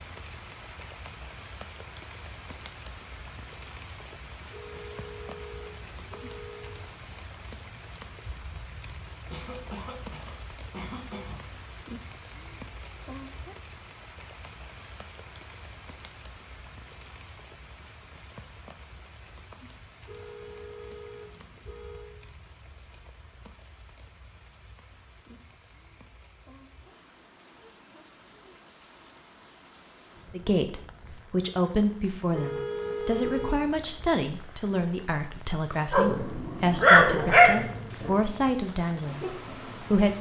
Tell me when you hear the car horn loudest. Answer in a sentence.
The loudest moment of the car horn is at 33 seconds.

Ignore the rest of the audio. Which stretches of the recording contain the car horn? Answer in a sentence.
You can hear the car horn from 4.5 to 6.8 s, from 20.1 to 22.2 s and from 32.3 to 33.8 s.